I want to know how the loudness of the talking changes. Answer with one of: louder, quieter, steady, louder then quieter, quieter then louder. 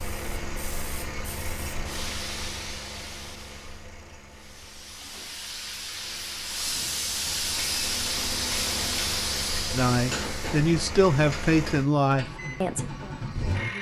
quieter.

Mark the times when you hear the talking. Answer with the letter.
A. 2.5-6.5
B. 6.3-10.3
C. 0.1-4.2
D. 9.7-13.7
D.